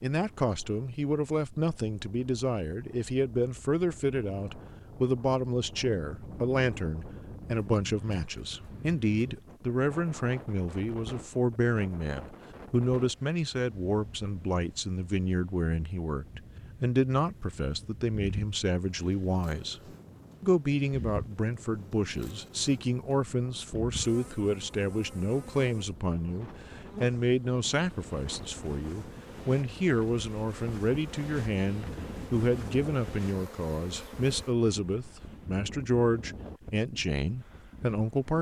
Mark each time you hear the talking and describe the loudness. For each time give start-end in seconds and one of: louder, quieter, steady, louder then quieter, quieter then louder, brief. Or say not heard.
0.0-19.8 steady
20.4-38.3 steady.